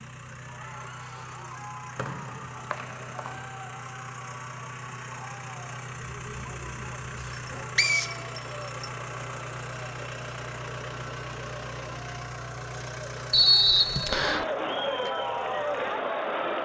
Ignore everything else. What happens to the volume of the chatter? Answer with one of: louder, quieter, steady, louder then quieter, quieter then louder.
louder.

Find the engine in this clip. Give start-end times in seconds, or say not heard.
0.0-16.6.